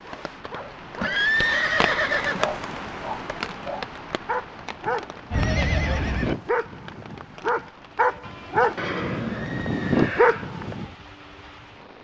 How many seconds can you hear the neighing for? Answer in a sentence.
You can hear the neighing for 4 seconds altogether.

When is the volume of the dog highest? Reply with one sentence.
The volume of the dog peaks at 10 seconds.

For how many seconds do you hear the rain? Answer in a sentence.
You can hear the rain for 12 seconds altogether.